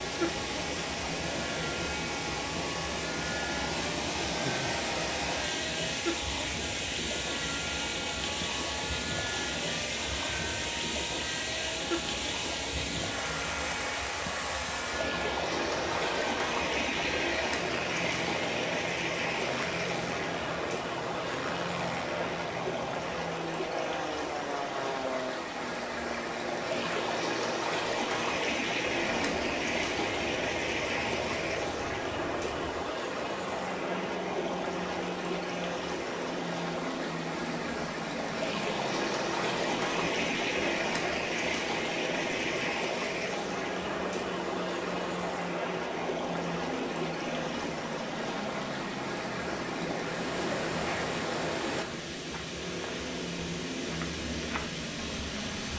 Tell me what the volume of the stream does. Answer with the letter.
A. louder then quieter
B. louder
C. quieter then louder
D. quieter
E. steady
E.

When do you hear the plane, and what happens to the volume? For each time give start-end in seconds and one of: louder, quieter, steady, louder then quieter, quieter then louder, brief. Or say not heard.
0.0-55.7 steady.